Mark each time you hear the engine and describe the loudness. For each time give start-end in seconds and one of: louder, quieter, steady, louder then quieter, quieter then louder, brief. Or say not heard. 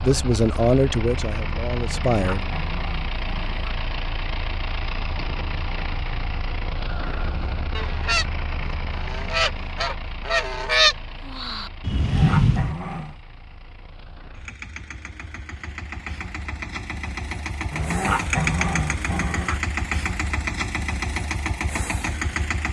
0.0-22.6 quieter then louder.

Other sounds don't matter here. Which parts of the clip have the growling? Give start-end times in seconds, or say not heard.
2.1-3.8, 11.9-13.2, 17.7-19.6.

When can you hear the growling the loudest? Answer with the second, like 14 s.
18 s.